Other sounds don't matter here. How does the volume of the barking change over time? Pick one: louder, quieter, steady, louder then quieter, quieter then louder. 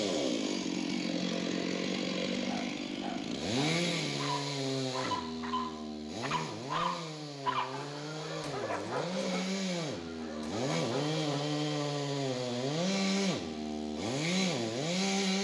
louder then quieter.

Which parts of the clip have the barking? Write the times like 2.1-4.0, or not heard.
2.4-11.6.